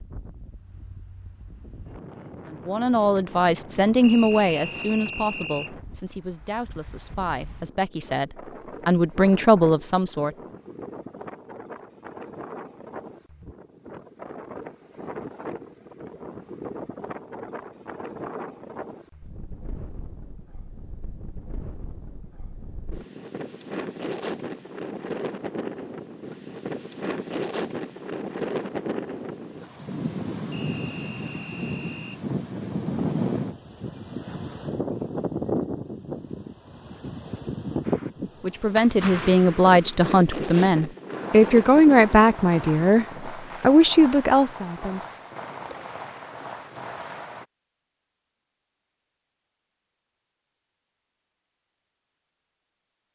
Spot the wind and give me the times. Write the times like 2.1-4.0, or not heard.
0.0-43.1.